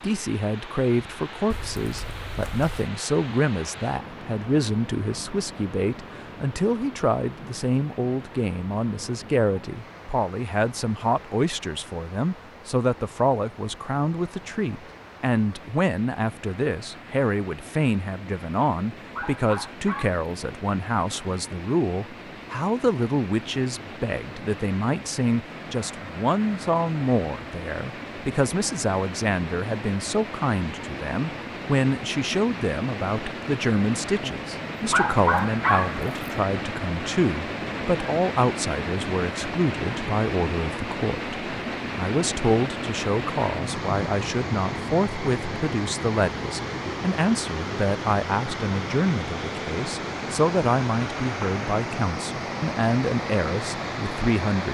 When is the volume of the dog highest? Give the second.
35 s.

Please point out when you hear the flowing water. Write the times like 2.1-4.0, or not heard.
0.0-54.6.